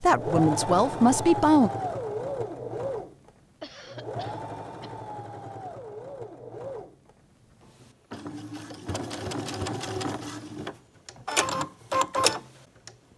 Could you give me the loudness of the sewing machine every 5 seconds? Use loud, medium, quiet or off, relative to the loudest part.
loud, medium, loud.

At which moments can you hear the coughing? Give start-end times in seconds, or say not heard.
3.6-4.9.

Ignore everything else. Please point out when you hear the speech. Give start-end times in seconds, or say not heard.
0.0-1.7.